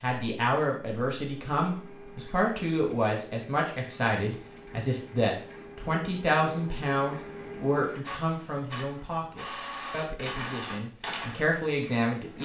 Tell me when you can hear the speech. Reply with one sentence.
You can hear the speech from 0.0 to 12.4 s.